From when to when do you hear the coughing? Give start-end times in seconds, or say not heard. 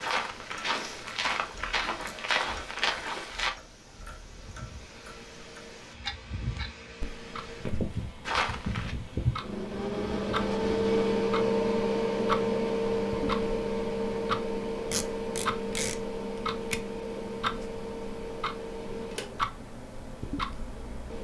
not heard.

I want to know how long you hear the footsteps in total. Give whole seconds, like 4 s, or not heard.
5 s.